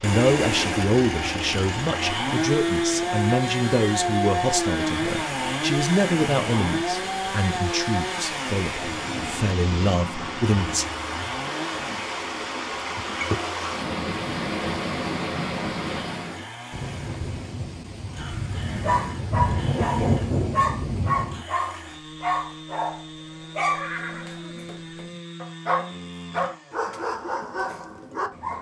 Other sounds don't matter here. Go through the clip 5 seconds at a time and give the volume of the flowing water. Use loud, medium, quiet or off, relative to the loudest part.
medium, medium, loud, loud, off, off.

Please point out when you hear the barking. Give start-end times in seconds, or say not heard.
18.1-28.5.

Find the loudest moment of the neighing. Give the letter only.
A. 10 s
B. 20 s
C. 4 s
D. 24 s
D.